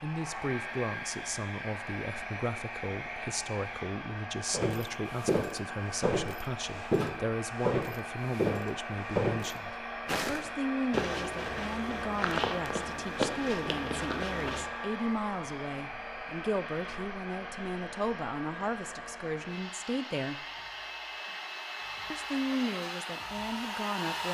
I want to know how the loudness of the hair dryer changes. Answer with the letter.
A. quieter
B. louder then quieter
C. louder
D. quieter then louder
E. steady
E.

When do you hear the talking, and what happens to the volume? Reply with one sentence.
You can hear the talking from 0.0 to 20.4 s, at a steady volume; and briefly from 22.1 to 24.2 s.